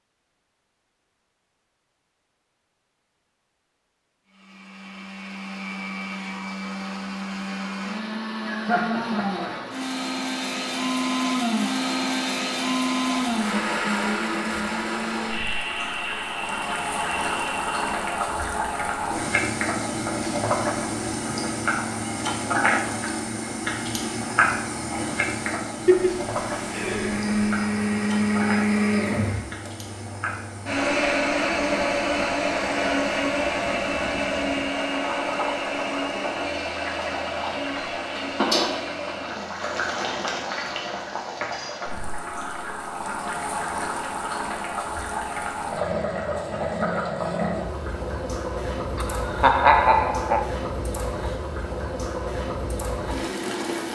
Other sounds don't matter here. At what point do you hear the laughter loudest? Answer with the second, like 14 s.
50 s.